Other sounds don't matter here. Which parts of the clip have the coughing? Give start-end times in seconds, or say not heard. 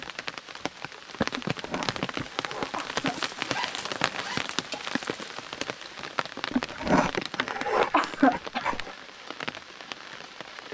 1.3-3.5, 6.5-8.9.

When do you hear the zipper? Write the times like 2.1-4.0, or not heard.
3.5-4.5.